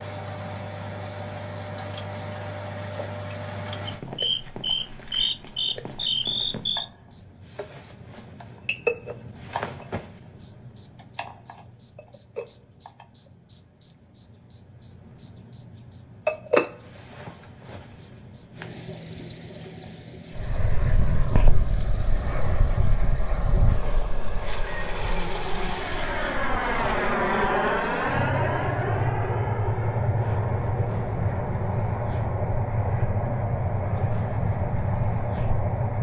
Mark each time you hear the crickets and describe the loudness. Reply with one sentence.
You can hear the crickets from 0.0 to 35.9 s, at a steady volume.